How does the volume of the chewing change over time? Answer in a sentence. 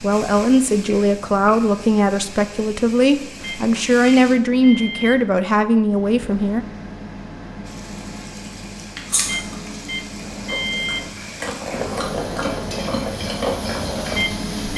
The loudness of the chewing goes down, then up.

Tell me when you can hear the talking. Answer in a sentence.
The talking can be heard from 0.0 to 6.7 s.